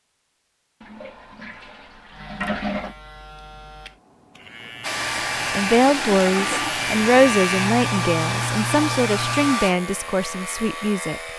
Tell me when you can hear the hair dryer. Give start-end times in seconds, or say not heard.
4.8-11.3.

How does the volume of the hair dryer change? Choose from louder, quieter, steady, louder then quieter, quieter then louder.
quieter.